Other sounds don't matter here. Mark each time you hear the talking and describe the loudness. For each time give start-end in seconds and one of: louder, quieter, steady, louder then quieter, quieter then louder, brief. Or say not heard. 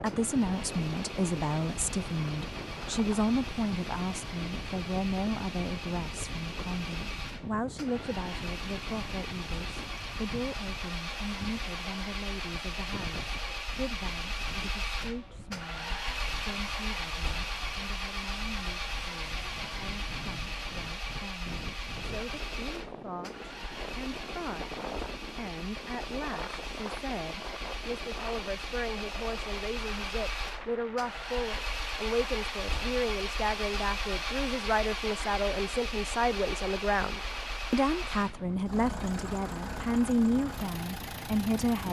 0.0-41.8 quieter then louder.